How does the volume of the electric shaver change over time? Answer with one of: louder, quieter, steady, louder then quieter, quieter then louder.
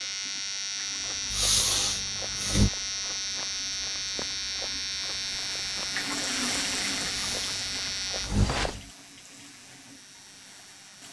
quieter.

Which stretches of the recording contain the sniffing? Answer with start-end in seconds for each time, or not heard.
1.3-2.7, 7.2-8.9.